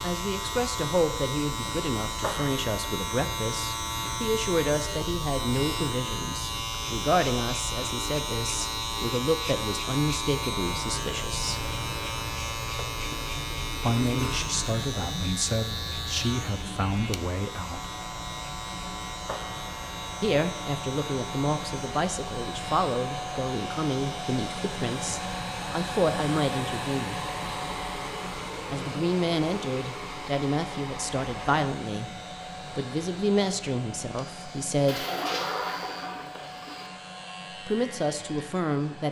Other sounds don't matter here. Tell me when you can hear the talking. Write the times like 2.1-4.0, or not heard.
0.0-11.7, 13.8-17.9, 20.2-27.2, 28.7-32.1, 32.7-35.0, 37.6-39.0.